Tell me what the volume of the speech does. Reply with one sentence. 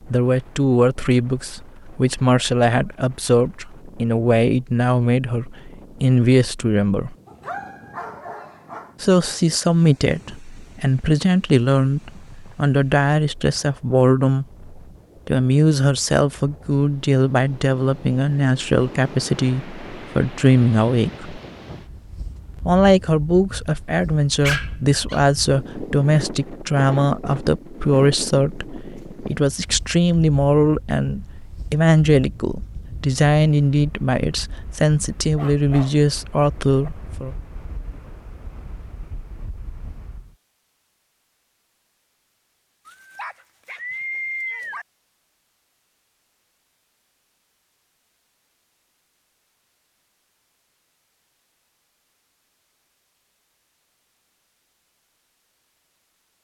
The volume of the speech stays about the same.